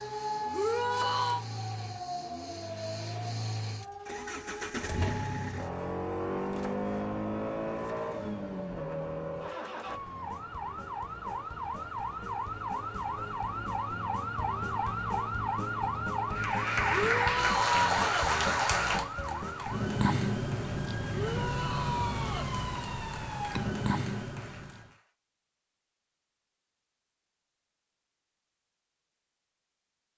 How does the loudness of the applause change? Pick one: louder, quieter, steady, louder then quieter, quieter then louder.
quieter.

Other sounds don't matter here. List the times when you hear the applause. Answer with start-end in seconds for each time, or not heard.
16.3-25.1.